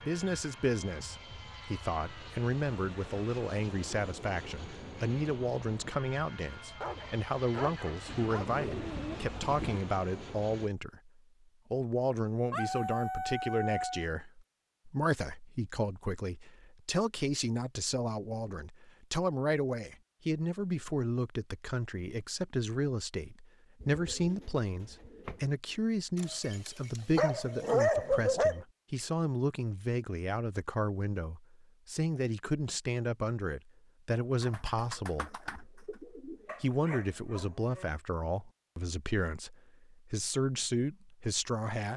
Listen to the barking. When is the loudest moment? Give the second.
28 s.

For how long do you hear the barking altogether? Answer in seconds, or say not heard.
7 s.